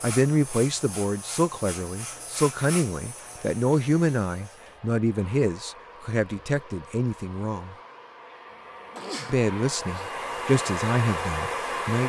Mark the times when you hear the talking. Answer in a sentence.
The talking can be heard from 0.0 to 7.8 s and from 9.2 to 12.0 s.